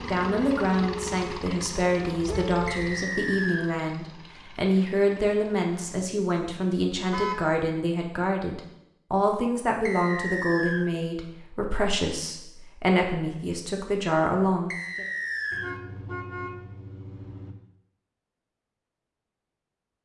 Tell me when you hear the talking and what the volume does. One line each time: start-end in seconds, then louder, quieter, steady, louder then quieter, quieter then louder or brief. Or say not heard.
0.0-15.1 steady.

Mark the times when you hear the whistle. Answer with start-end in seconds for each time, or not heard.
2.6-3.7, 9.8-10.8, 14.7-15.7.